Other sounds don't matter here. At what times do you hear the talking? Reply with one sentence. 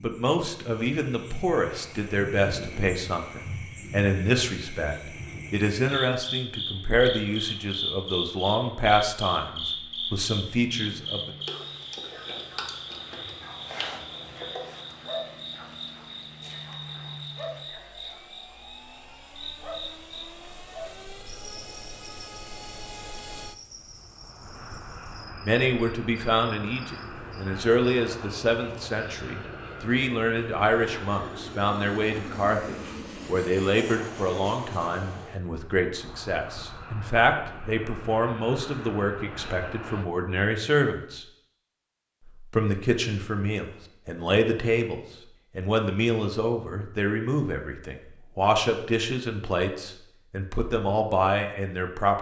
The talking can be heard from 0.0 to 11.3 s, from 25.4 to 41.2 s and from 42.5 to 52.1 s.